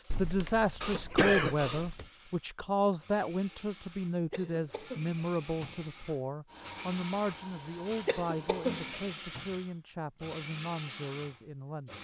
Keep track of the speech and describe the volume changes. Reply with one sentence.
The loudness of the speech goes down.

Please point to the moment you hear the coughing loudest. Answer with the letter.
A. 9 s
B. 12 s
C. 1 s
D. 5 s
C.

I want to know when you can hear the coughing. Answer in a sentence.
You can hear the coughing from 0.8 to 1.9 s, from 4.3 to 5.2 s and from 8.1 to 9.1 s.